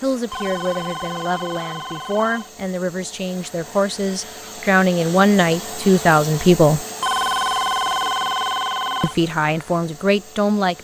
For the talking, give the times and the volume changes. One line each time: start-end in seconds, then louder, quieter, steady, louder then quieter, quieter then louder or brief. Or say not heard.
0.0-6.8 louder
9.0-10.7 brief.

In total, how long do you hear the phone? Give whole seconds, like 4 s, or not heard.
4 s.